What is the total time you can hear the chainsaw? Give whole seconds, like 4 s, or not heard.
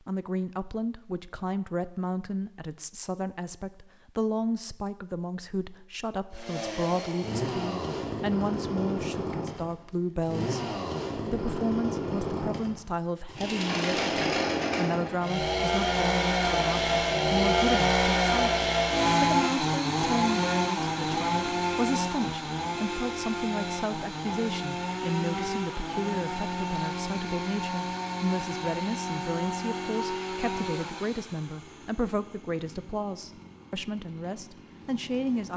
29 s.